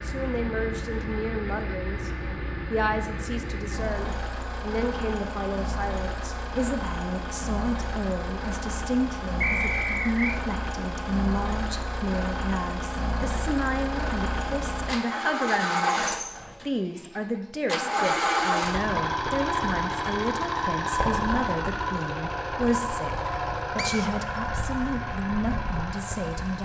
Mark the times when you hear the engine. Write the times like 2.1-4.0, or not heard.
0.0-26.5.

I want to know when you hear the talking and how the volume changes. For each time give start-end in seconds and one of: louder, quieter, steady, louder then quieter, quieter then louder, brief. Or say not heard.
0.0-16.0 steady
16.6-26.5 steady.